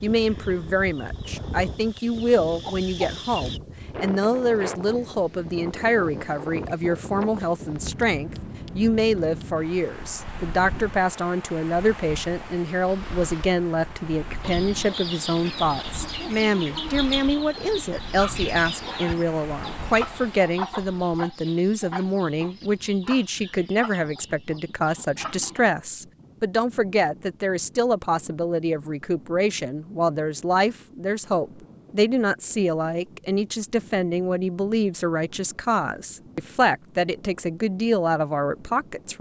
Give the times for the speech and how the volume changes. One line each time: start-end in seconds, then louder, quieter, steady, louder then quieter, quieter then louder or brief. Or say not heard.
0.0-39.1 steady.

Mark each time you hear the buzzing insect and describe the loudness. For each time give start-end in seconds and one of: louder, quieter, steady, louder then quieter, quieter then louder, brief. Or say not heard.
not heard.